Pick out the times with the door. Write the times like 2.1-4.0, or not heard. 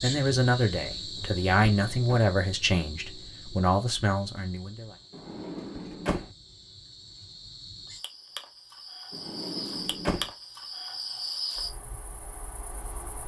1.1-2.2, 5.1-6.3, 9.1-10.3.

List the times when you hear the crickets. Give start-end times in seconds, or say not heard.
0.0-13.2.